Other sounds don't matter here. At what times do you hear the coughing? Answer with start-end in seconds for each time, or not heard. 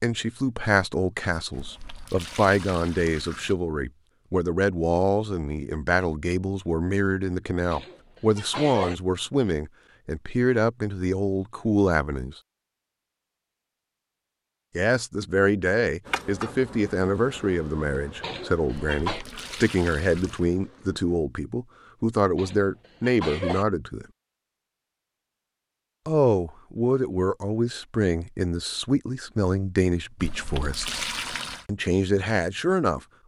7.7-8.9, 18.2-19.2, 22.4-23.6.